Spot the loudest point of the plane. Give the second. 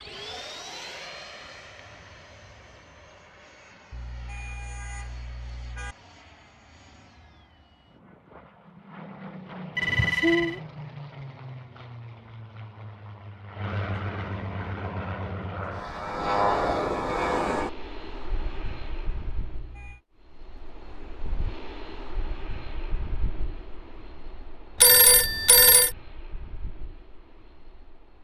17 s.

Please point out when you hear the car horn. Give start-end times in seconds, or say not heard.
3.9-6.0, 19.5-20.0.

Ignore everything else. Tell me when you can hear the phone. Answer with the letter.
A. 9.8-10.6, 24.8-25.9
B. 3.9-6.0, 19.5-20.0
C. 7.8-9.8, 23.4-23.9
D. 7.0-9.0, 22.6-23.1
A.